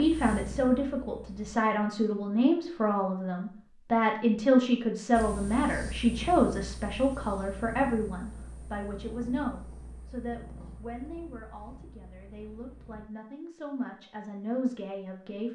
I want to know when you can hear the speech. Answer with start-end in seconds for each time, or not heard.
0.0-15.5.